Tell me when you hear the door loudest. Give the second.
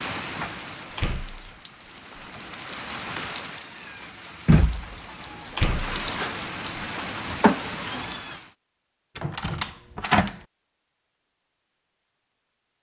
10 s.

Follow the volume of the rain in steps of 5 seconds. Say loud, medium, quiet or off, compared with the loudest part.
loud, loud, off.